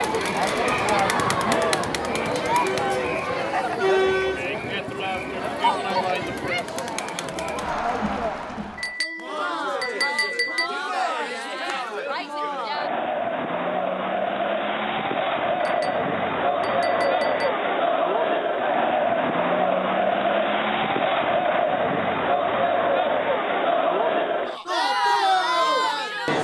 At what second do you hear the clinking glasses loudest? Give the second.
10 s.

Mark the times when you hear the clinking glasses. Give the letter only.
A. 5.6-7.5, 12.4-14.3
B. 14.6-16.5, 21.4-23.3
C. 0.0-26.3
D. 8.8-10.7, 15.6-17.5
D.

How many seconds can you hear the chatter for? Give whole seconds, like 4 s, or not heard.
26 s.